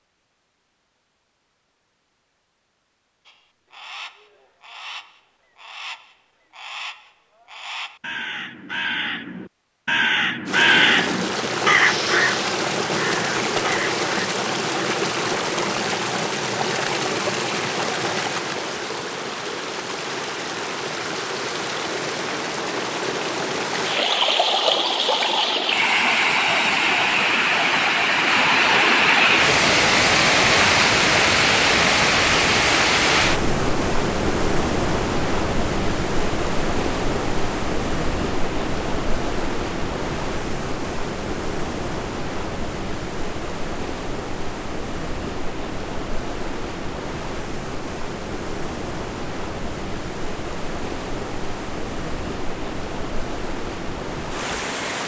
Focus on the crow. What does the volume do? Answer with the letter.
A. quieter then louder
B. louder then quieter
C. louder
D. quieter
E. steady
C.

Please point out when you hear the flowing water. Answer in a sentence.
You can hear the flowing water from 10.4 to 55.0 s.